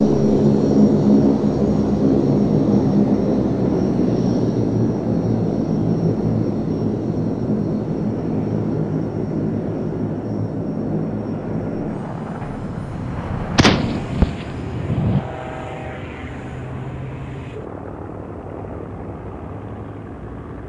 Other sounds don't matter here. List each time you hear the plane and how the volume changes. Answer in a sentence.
You can hear the plane from 0.0 to 20.6 s, getting quieter.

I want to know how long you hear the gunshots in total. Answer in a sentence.
The gunshots can be heard for 2 seconds in total.